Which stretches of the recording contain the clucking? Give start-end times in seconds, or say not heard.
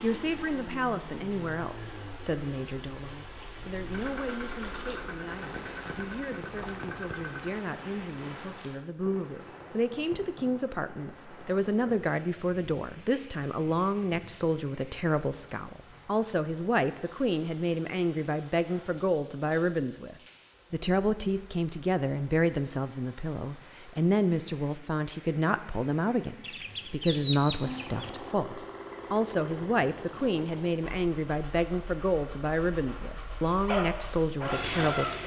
26.4-28.1.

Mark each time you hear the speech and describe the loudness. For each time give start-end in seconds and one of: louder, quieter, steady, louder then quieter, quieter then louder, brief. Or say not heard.
0.0-35.2 louder.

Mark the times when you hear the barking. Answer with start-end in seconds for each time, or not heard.
33.6-35.2.